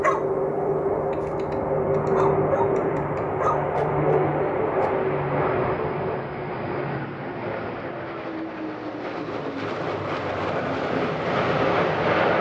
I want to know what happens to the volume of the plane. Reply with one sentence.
The loudness of the plane goes down, then up.